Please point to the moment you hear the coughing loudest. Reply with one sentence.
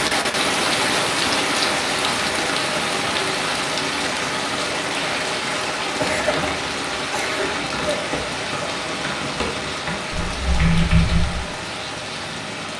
The loudest moment of the coughing is at 6 seconds.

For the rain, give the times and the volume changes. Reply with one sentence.
You can hear the rain from 0.0 to 12.7 s, getting quieter.